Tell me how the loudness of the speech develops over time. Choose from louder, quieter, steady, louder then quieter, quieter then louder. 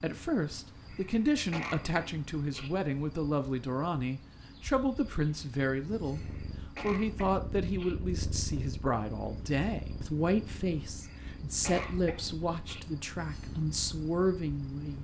steady.